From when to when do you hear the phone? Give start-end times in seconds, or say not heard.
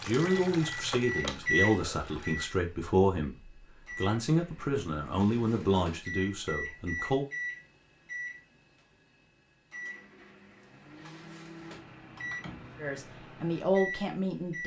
not heard.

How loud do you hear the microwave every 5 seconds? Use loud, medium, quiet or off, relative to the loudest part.
loud, medium, medium.